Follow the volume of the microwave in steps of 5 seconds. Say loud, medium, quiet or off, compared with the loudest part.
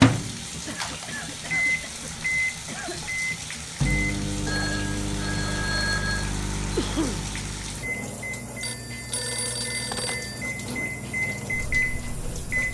loud, medium, medium.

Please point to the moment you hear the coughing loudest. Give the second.
7 s.